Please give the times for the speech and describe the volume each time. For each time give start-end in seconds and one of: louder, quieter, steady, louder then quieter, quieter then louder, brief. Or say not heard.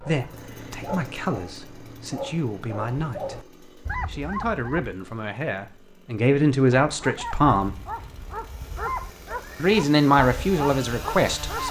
0.0-7.8 louder
9.6-11.6 brief.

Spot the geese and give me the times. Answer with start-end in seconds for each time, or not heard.
not heard.